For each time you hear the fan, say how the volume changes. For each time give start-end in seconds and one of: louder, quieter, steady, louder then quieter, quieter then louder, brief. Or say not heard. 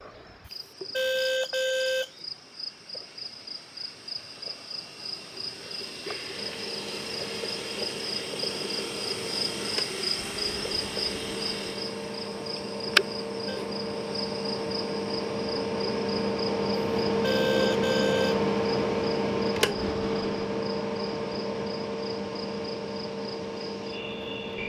6.3-24.6 louder then quieter.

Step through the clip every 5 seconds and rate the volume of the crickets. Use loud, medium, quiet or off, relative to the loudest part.
medium, loud, loud, medium, quiet.